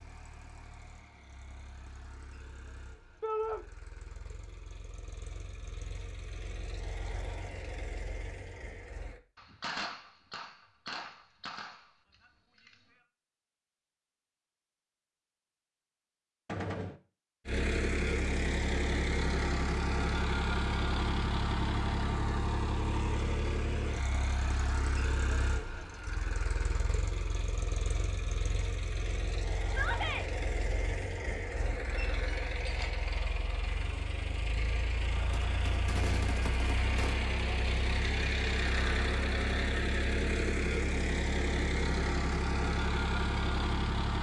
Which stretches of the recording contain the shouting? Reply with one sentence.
The shouting can be heard from 3.2 to 3.6 s and from 29.6 to 30.2 s.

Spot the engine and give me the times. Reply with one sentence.
The engine can be heard from 0.0 to 9.2 s and from 17.4 to 44.1 s.